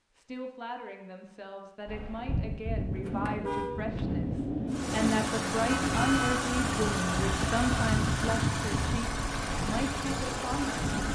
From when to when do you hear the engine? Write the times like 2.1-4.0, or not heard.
4.7-11.1.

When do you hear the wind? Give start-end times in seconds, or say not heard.
1.9-11.1.